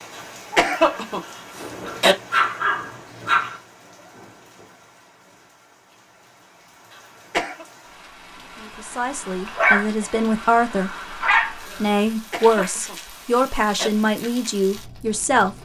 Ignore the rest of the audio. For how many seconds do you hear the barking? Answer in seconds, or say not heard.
4 s.